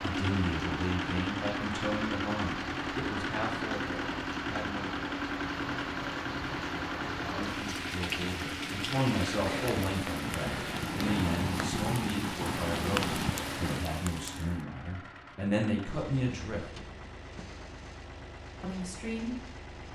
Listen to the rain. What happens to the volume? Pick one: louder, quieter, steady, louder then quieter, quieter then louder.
louder.